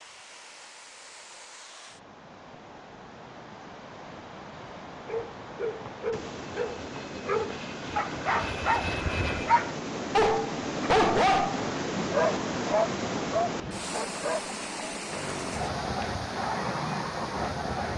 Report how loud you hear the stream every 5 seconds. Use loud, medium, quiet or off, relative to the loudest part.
quiet, medium, loud, medium.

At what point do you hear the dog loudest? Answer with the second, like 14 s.
11 s.